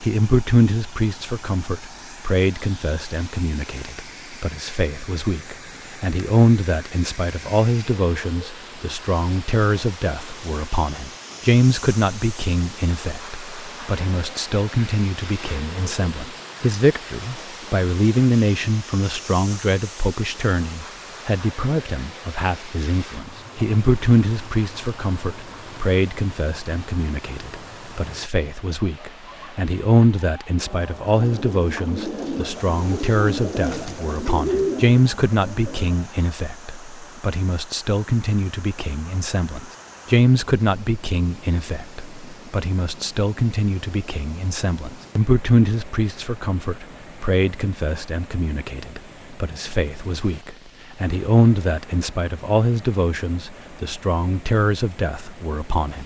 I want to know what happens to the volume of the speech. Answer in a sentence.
The volume of the speech stays about the same.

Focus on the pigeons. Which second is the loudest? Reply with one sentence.
The loudest moment of the pigeons is at 35 seconds.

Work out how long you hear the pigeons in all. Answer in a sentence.
The pigeons can be heard for 5 seconds in total.